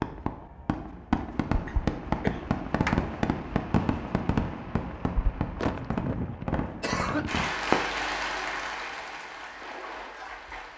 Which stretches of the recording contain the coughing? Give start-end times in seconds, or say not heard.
1.6-3.3, 5.5-7.4.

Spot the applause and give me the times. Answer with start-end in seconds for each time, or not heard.
7.2-10.7.